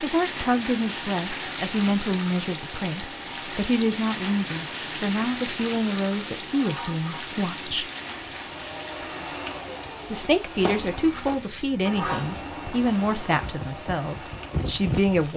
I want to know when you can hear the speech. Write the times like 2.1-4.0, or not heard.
0.0-7.8, 10.1-15.3.